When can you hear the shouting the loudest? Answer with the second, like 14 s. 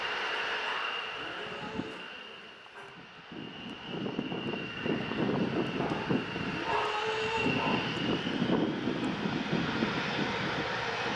7 s.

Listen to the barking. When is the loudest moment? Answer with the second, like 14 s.
7 s.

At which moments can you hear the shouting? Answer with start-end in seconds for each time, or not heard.
1.1-2.0, 6.5-7.5.